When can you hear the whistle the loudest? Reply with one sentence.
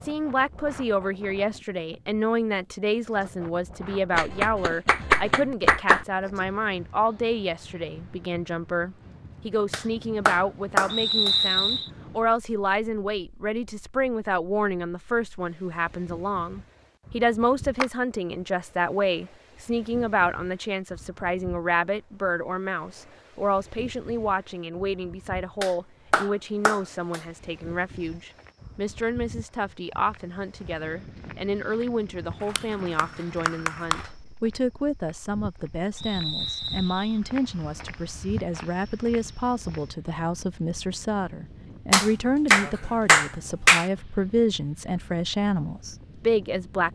The volume of the whistle peaks at 11 seconds.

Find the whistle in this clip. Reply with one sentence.
You can hear the whistle from 10.9 to 11.9 s and from 36.0 to 37.2 s.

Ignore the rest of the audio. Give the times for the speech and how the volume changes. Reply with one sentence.
The speech can be heard from 0.0 to 46.8 s, at a steady volume.